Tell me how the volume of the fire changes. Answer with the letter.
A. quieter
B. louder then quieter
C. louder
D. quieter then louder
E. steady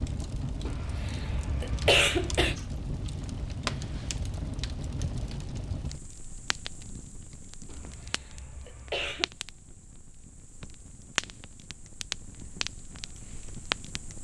D.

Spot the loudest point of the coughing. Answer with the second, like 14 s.
2 s.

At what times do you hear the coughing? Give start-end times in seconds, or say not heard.
0.7-2.6, 7.7-9.3.